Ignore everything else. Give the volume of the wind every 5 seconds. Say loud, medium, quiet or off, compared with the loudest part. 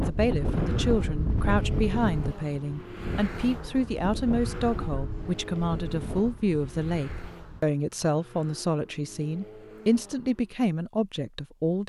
loud, medium, off.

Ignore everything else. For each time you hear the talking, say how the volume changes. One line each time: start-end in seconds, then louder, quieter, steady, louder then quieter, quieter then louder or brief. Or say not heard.
0.0-11.8 steady.